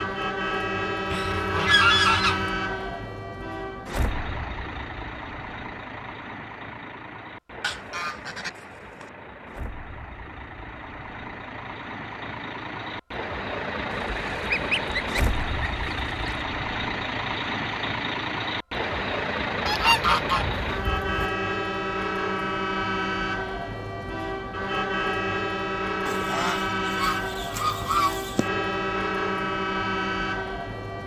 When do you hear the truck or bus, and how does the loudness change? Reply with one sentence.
You can hear the truck or bus from 0.0 to 31.0 s, getting quieter then louder.